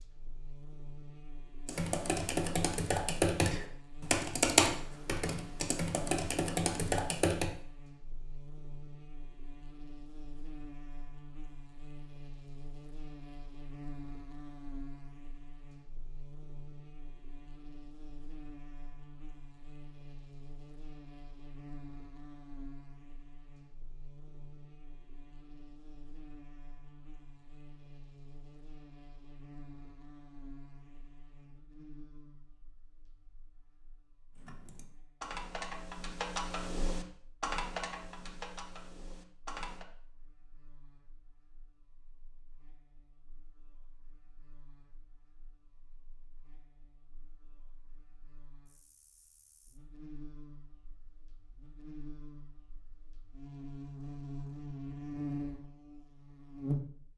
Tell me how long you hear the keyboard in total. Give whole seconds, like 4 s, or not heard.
11 s.